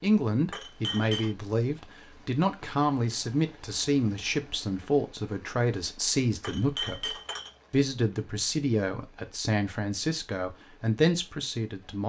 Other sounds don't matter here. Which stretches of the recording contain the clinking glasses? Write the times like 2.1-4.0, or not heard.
0.5-1.4, 6.4-7.5.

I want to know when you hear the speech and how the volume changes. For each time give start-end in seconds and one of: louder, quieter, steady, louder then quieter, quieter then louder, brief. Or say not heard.
0.0-12.0 steady.